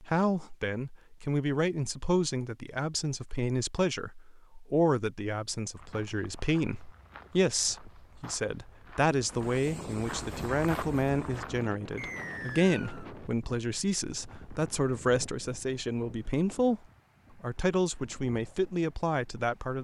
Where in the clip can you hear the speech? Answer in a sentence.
The speech can be heard from 0.0 to 16.8 s and from 17.4 to 19.7 s.